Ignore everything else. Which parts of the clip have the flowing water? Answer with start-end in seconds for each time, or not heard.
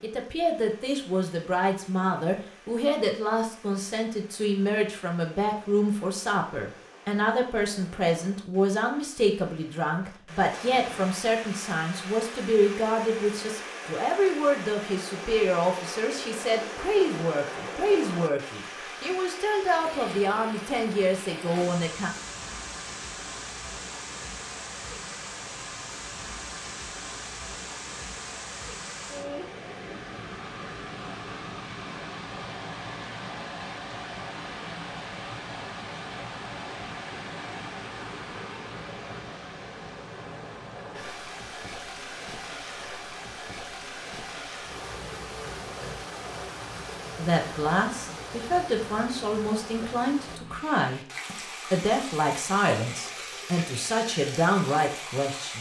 0.0-55.5.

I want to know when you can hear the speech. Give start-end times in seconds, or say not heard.
0.0-22.1, 47.1-55.5.